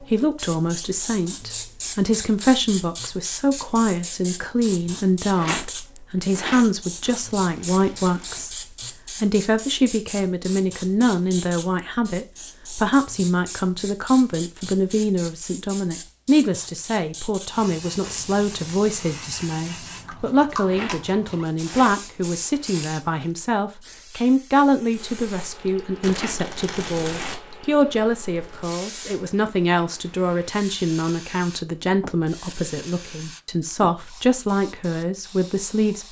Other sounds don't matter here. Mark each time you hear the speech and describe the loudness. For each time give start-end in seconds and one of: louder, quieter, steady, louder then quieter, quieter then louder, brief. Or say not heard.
0.0-36.0 steady.